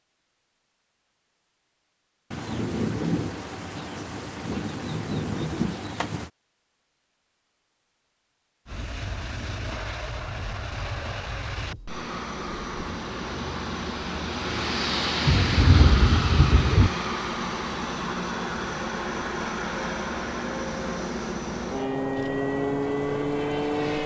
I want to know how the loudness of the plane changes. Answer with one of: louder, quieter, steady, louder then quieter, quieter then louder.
louder.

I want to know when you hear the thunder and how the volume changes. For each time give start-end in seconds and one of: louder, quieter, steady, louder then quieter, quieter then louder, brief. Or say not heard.
2.3-6.3 quieter then louder
15.2-16.9 brief.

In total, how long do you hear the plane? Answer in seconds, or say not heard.
15 s.